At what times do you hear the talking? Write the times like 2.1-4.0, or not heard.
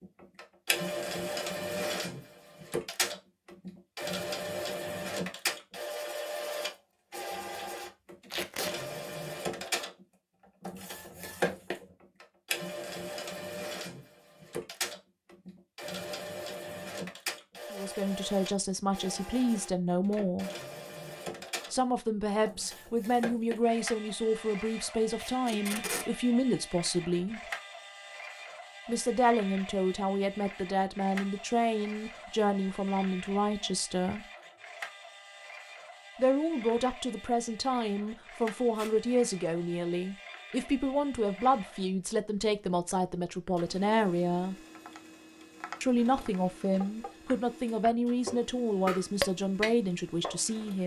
17.7-20.5, 21.7-27.4, 28.9-34.2, 36.1-44.5, 45.8-50.8.